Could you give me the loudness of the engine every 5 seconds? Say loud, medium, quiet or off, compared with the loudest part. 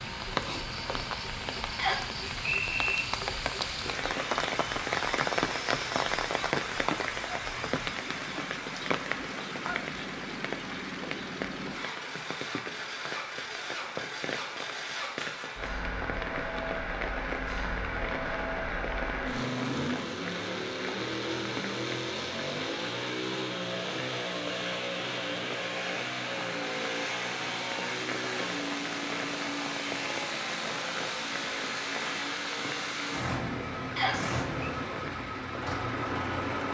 medium, medium, medium, loud, loud, loud, loud, loud.